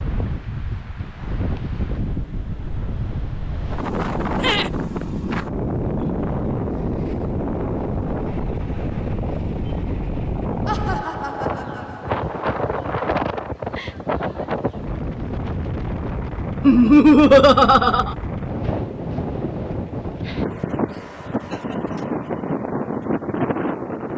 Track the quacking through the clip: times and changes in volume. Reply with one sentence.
The quacking can't be heard in this clip.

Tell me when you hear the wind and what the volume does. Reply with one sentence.
You can hear the wind from 0.0 to 24.1 s, at a steady volume.